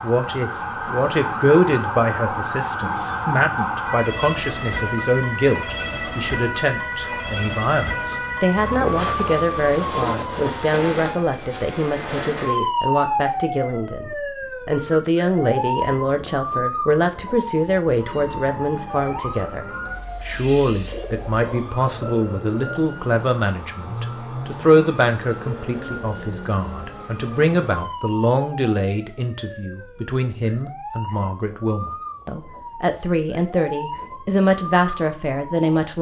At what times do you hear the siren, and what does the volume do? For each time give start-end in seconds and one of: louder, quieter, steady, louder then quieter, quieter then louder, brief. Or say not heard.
0.0-35.7 quieter.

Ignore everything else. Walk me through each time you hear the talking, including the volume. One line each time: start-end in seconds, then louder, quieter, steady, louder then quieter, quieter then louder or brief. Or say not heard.
0.0-35.9 steady.